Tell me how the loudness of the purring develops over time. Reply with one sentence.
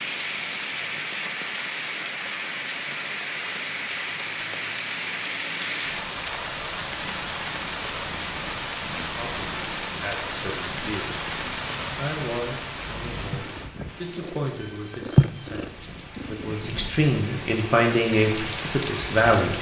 The loudness of the purring goes up.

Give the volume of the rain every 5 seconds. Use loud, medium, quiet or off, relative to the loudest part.
loud, loud, loud, medium.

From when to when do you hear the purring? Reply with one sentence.
The purring can be heard from 6.7 to 17.1 s.